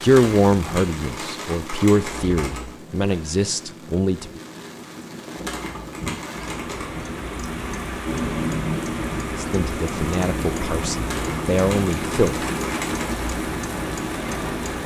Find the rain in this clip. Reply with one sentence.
You can hear the rain from 0.0 to 14.8 s.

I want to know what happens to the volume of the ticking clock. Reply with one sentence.
The volume of the ticking clock goes up.